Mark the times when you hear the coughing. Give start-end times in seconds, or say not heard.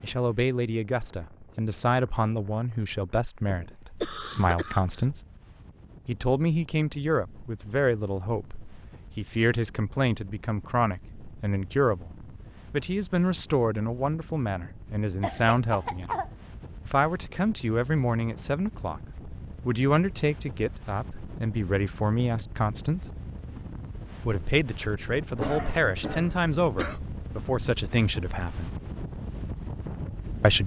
4.0-5.0, 15.2-16.3, 25.4-27.0.